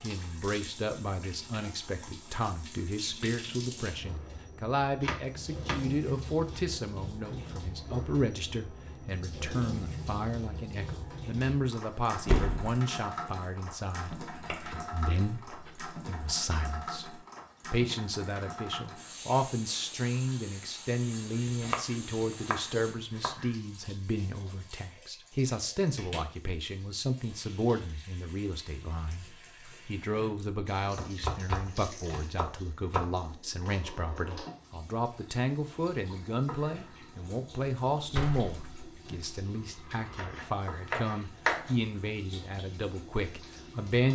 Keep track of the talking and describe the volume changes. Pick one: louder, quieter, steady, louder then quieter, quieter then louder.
steady.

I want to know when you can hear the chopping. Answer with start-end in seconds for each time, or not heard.
5.0-6.6, 14.3-15.8, 21.1-23.6, 30.9-33.1, 40.1-41.8.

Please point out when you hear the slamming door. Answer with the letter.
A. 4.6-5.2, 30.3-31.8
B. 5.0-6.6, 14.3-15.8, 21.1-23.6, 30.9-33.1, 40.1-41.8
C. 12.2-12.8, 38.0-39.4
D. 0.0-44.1
C.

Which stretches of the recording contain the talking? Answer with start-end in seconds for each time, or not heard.
0.0-44.1.